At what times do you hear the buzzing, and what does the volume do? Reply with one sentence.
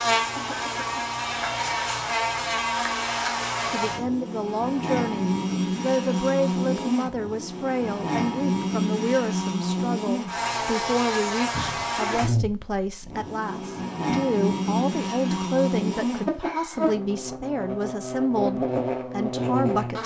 You can hear the buzzing from 0.0 to 20.0 s, at a steady volume.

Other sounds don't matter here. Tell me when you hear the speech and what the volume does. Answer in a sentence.
You can hear the speech from 3.7 to 20.0 s, at a steady volume.